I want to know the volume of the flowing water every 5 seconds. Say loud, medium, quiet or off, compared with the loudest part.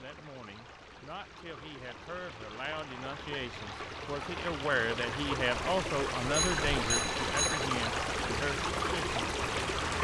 medium, loud.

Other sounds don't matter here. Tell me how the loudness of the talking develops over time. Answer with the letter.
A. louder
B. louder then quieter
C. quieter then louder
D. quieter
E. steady
B.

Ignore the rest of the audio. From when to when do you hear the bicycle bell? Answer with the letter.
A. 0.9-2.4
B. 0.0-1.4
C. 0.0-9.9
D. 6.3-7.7
D.